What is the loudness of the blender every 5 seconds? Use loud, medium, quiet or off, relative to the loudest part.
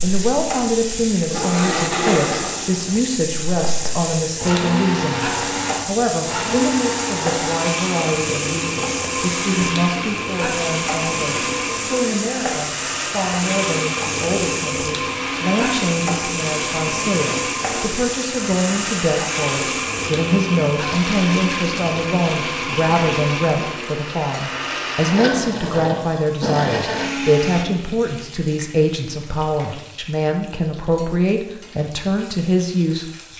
loud, loud, loud, loud, loud, loud, off.